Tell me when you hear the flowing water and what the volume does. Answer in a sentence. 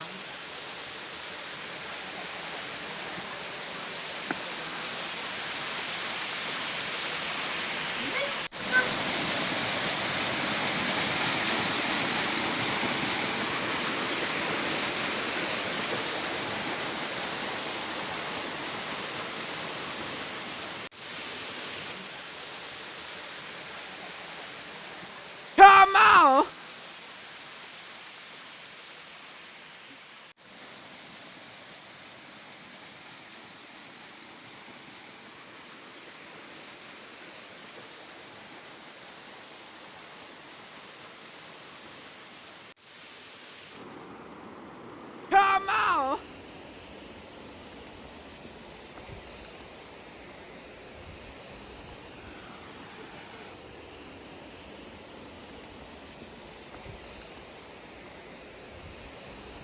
You can hear the flowing water from 0.0 to 59.5 s, getting quieter.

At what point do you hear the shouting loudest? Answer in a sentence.
The loudest moment of the shouting is at 26 seconds.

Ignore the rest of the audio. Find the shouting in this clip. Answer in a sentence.
The shouting can be heard from 8.0 to 9.4 s, from 25.6 to 26.4 s and from 45.3 to 46.2 s.